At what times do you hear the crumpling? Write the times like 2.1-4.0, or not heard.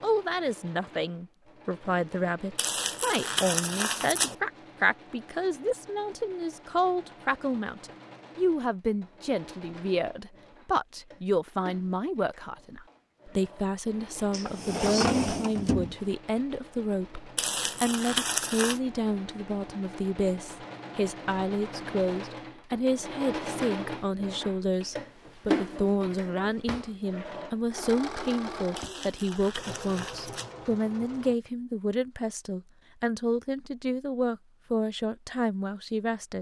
2.5-4.3, 17.4-18.8, 28.8-30.6.